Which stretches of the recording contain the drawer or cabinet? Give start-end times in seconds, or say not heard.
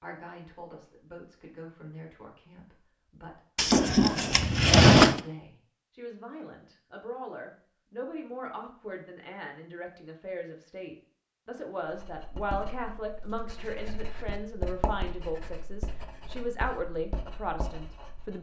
3.5-5.2.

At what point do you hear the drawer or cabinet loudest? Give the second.
5 s.